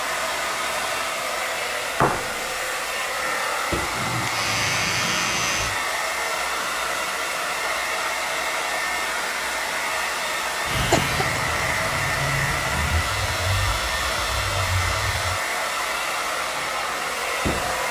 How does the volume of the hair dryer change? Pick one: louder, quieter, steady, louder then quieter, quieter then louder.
steady.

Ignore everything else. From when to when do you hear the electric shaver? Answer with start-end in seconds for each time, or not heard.
3.9-5.8, 10.7-15.4.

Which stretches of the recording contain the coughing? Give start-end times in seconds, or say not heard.
10.9-11.5.